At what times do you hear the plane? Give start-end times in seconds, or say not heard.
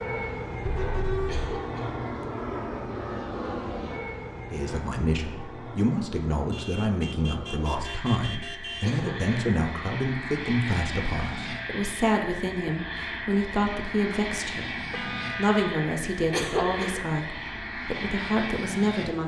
0.0-19.2.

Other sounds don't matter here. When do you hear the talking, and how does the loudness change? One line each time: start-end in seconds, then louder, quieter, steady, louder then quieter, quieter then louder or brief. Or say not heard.
4.5-19.2 steady.